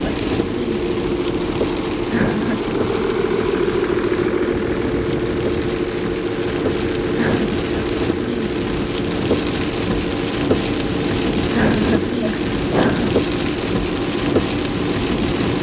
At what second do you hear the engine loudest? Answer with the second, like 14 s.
4 s.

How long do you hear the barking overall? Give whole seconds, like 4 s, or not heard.
not heard.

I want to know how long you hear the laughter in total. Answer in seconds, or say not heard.
3 s.